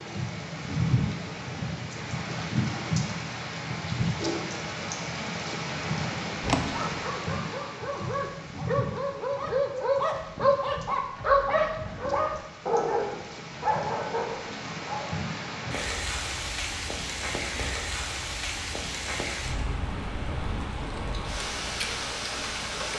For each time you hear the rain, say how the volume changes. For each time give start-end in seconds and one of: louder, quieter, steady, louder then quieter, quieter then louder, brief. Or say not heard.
0.0-22.9 quieter then louder.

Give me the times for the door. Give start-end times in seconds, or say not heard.
6.4-7.0.